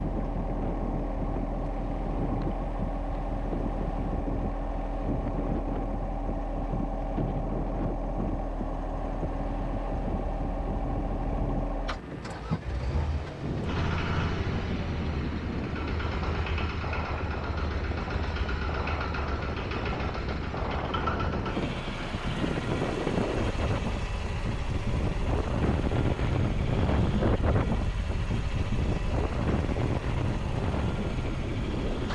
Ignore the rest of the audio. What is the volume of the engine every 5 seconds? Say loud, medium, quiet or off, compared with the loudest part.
loud, loud, loud, loud, loud, medium, medium.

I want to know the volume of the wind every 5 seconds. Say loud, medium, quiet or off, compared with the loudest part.
medium, medium, medium, medium, loud, loud, loud.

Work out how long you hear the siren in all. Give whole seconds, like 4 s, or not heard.
not heard.